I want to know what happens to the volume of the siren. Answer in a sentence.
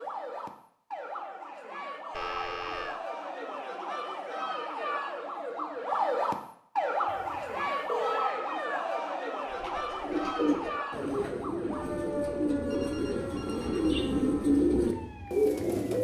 The volume of the siren goes up, then down.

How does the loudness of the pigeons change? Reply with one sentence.
The volume of the pigeons goes up.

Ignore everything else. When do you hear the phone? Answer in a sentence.
You can hear the phone from 2.1 to 3.0 s, from 7.0 to 8.3 s and from 12.7 to 13.9 s.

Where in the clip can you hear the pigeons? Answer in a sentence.
You can hear the pigeons from 9.4 to 15.9 s.